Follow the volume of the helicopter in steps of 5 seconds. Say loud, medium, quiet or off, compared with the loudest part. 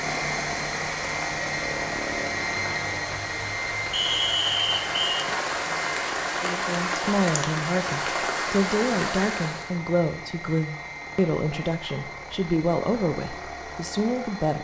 loud, medium, medium.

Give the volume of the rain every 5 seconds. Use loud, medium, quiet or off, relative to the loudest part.
medium, loud, off.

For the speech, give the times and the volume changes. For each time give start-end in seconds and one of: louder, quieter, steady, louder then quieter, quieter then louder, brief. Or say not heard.
6.4-14.6 steady.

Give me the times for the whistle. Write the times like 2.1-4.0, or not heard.
3.9-5.2.